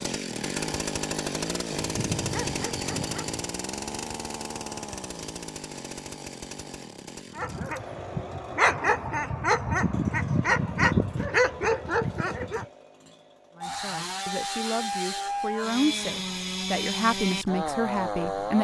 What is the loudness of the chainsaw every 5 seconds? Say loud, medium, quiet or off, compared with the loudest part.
loud, medium, medium, loud.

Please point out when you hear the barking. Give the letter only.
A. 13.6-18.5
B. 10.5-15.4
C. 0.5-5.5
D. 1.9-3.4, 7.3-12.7
D.